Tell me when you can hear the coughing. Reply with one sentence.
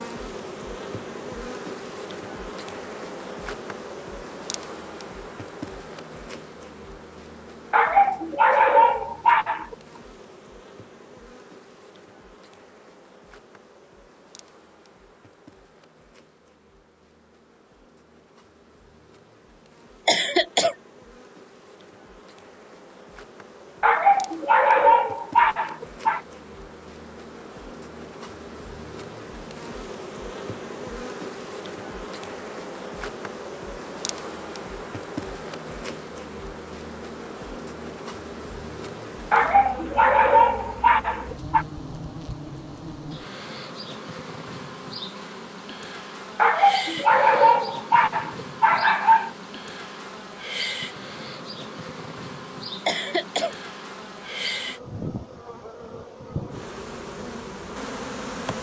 You can hear the coughing from 20.1 to 20.8 s and from 52.9 to 53.5 s.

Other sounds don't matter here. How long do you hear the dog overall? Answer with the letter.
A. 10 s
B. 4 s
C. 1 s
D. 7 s
A.